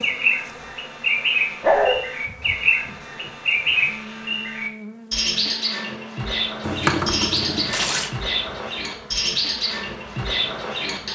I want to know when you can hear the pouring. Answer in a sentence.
The pouring can be heard from 6.6 to 8.1 s.